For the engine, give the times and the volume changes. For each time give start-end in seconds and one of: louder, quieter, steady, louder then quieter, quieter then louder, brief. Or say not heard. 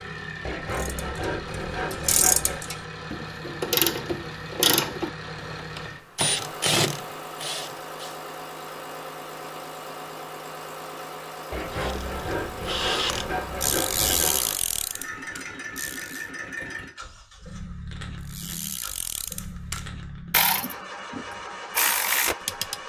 0.0-22.8 steady.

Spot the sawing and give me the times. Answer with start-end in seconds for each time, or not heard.
0.4-2.6, 11.5-14.4.